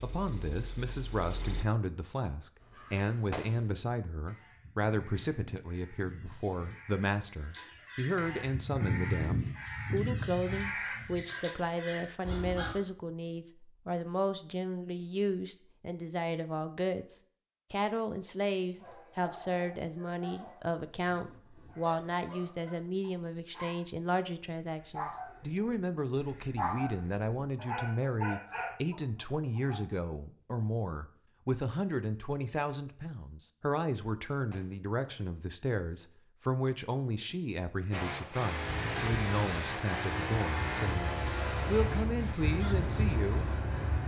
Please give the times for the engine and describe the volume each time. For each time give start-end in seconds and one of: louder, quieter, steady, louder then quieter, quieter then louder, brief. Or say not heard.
0.0-1.6 brief
37.9-44.0 quieter.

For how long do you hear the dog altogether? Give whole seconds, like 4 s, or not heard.
10 s.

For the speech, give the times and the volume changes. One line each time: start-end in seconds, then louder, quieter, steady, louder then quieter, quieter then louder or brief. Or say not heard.
0.0-44.0 steady.